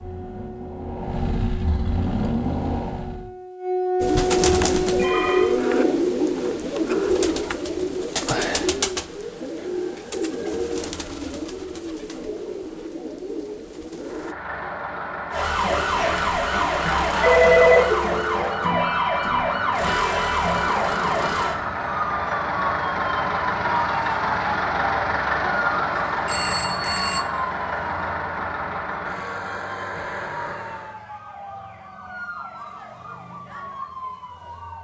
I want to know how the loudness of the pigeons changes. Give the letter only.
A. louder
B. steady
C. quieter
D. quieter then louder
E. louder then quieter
C.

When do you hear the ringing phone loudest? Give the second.
18 s.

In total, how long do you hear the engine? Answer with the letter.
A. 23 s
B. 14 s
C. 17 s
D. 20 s
D.